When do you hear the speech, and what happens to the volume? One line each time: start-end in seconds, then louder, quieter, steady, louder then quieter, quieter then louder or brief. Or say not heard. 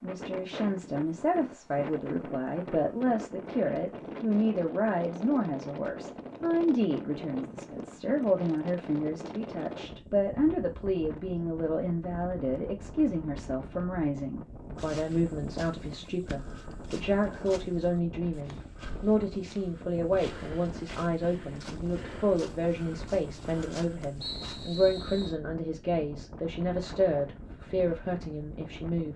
0.0-29.1 steady.